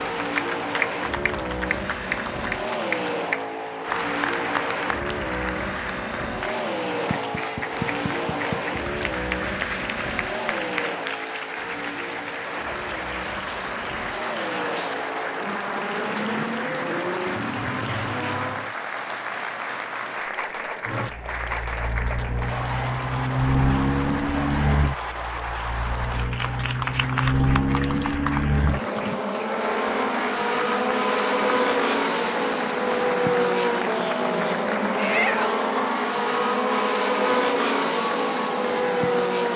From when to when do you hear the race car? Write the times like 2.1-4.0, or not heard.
0.0-18.8, 20.9-39.5.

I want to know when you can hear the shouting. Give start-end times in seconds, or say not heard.
35.0-35.6.